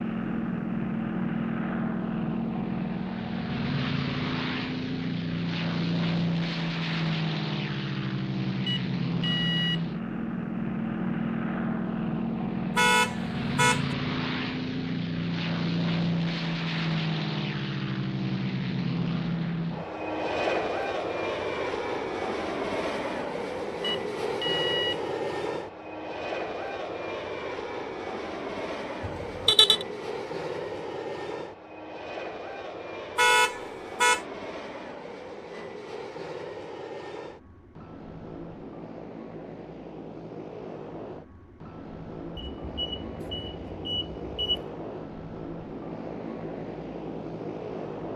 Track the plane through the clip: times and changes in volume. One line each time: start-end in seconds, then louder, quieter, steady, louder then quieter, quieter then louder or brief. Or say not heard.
0.0-48.1 quieter.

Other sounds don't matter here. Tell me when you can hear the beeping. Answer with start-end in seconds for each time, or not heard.
8.7-9.8, 23.8-25.0, 42.4-44.6.